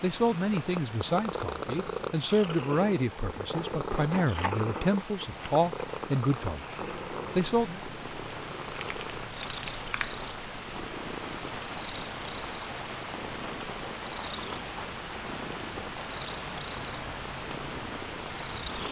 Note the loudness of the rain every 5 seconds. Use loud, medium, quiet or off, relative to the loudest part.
medium, loud, loud, loud.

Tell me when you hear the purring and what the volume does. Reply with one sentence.
The purring can be heard from 0.2 to 18.8 s, getting quieter.